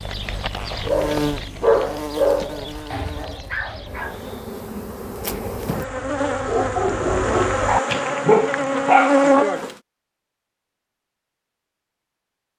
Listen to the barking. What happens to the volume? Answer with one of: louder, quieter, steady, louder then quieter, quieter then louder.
quieter then louder.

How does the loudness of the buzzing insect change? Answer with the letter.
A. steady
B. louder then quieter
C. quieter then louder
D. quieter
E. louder
C.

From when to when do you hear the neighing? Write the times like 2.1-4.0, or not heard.
not heard.